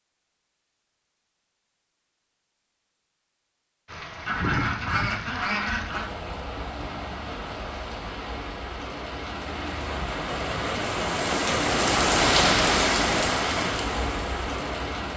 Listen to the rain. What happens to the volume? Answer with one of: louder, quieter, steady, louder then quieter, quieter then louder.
louder.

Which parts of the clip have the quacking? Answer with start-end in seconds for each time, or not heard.
4.2-6.0.